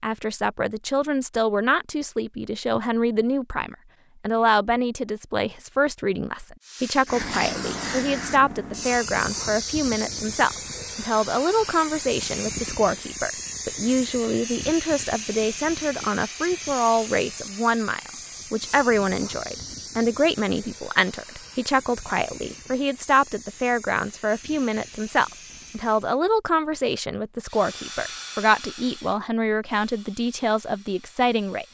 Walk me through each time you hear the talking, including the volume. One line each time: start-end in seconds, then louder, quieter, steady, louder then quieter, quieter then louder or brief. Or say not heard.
0.0-31.7 steady.